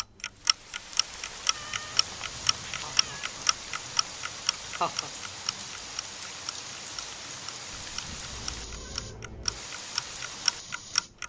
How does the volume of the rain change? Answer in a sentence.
The volume of the rain stays about the same.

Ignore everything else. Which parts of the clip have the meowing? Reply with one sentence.
You can hear the meowing from 1.5 to 3.3 s and from 7.7 to 9.7 s.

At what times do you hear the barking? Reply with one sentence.
The barking can't be heard in this clip.